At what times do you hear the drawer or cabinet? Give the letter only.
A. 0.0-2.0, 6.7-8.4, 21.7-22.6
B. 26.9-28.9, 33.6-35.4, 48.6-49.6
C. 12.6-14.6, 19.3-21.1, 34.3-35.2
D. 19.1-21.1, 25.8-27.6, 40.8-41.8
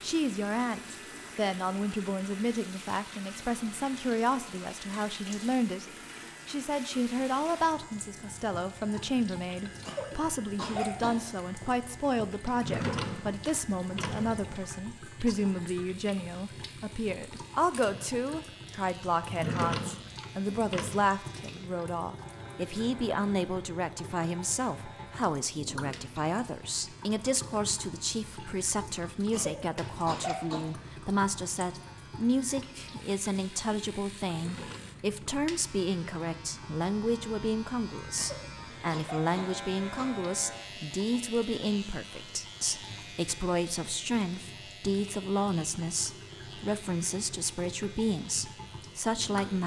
C.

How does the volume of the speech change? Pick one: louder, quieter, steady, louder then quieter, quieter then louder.
steady.